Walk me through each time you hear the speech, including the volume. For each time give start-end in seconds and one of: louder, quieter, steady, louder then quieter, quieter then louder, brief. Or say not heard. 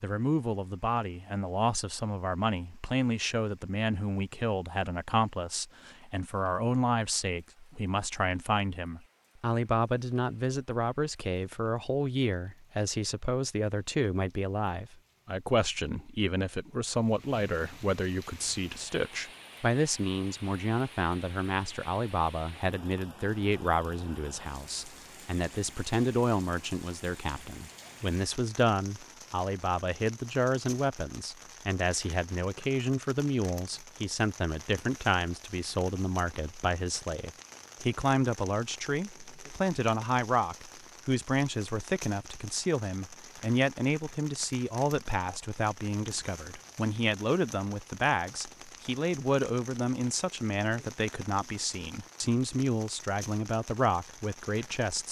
0.0-55.0 steady.